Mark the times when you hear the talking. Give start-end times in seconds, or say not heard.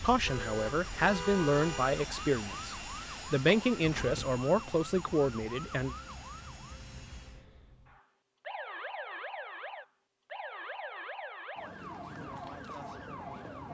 0.0-6.0.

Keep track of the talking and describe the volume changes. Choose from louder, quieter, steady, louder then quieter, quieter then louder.
steady.